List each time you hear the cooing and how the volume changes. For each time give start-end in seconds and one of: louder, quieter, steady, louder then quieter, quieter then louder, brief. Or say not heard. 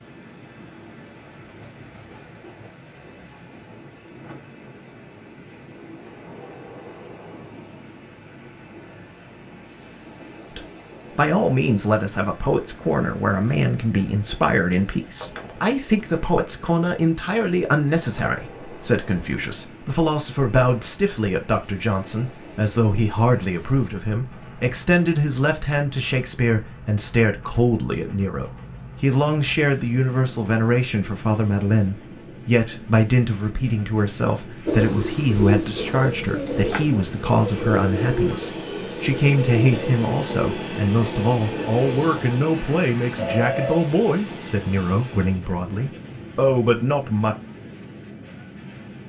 34.6-42.1 quieter.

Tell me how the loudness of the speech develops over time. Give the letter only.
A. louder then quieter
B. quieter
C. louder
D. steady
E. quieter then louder
D.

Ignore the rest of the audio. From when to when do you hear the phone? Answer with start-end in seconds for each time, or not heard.
15.2-15.8, 43.1-44.5.